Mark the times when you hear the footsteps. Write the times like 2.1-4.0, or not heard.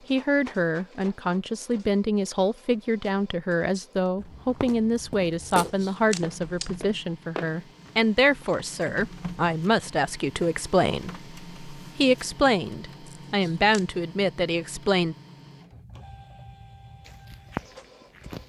4.2-7.5, 17.1-18.4.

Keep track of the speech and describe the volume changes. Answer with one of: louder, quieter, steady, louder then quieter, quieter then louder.
steady.